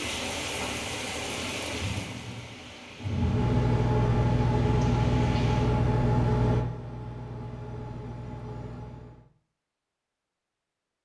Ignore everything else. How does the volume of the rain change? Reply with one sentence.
The loudness of the rain goes down.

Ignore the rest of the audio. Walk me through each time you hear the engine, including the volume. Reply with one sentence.
The engine can be heard from 3.0 to 9.2 s, getting quieter.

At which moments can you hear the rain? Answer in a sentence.
The rain can be heard from 0.0 to 5.8 s.